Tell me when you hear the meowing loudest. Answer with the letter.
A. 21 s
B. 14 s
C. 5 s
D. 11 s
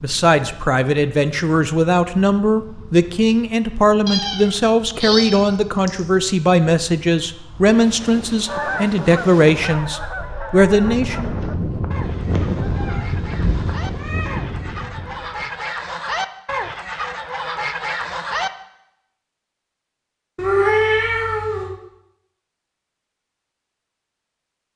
A.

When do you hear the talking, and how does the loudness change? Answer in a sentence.
The talking can be heard from 0.0 to 11.3 s, at a steady volume.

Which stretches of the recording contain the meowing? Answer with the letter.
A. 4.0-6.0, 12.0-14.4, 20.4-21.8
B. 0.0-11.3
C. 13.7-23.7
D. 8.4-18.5
A.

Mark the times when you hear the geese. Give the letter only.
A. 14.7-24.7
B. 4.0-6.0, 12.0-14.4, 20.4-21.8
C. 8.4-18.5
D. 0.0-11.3
C.